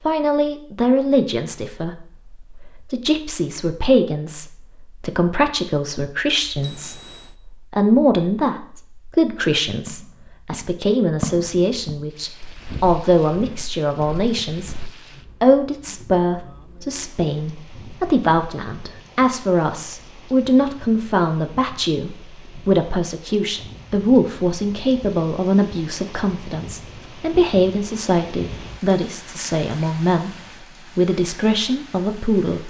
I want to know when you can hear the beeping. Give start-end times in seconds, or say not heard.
6.6-7.4.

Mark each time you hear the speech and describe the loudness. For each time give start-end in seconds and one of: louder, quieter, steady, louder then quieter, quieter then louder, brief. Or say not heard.
0.1-14.8 steady
15.4-30.3 steady
30.9-32.6 brief.